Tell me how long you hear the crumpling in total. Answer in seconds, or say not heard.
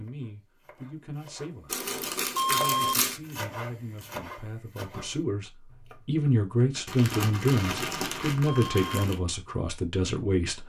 4 s.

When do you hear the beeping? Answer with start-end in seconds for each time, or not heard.
2.3-3.0, 8.4-9.1.